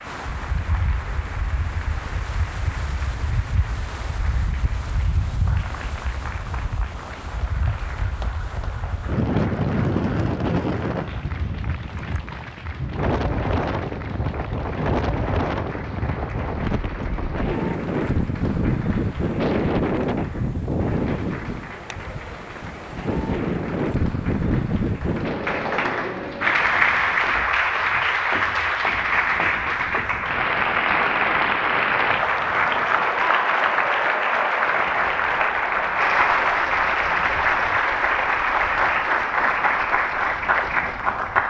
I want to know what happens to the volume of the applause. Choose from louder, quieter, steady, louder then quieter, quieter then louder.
louder.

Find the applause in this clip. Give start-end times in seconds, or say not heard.
0.0-41.4.